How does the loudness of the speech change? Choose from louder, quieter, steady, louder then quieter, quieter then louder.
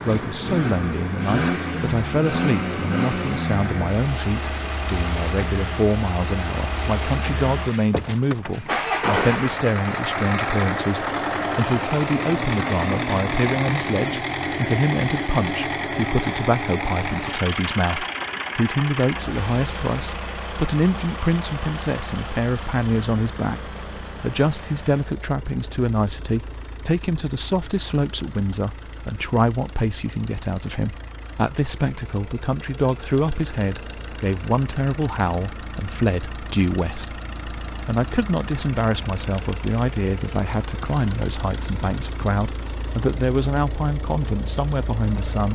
steady.